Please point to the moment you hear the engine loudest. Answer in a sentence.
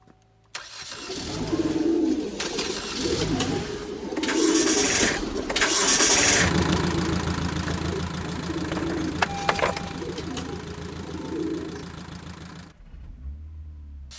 The volume of the engine peaks at 6 seconds.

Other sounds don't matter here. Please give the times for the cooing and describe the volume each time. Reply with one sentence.
The cooing can be heard from 0.9 to 12.1 s, getting quieter.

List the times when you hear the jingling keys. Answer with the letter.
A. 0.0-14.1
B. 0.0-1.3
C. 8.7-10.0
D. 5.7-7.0
C.